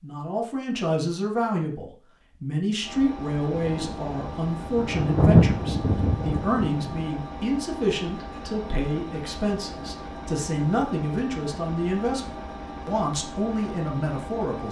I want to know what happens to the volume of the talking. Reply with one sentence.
The volume of the talking stays about the same.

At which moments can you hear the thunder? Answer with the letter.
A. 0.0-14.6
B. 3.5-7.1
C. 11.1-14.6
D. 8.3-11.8
B.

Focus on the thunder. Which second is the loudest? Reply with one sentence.
The loudest moment of the thunder is at 5 seconds.